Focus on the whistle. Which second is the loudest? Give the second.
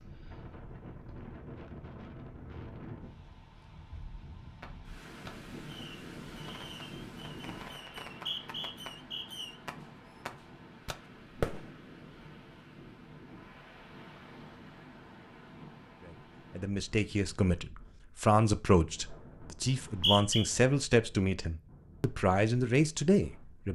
20 s.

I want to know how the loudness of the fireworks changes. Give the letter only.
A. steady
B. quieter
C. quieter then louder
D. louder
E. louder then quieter
D.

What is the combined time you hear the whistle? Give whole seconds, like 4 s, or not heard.
2 s.